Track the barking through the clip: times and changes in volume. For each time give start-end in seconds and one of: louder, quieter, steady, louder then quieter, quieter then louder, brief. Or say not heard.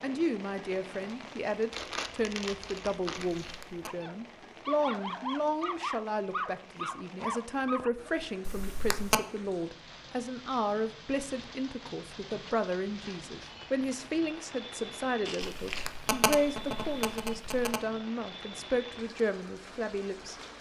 3.8-8.2 steady.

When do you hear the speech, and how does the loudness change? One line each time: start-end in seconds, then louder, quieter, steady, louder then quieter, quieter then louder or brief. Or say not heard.
0.0-20.4 steady.